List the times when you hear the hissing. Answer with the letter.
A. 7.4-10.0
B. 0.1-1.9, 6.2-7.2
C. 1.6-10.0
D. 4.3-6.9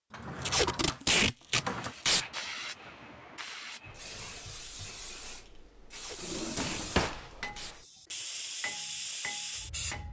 C.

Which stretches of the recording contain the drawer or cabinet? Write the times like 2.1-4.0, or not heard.
0.1-1.9, 6.2-7.2.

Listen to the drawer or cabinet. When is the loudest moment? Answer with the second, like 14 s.
7 s.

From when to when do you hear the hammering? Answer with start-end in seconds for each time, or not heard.
7.4-10.0.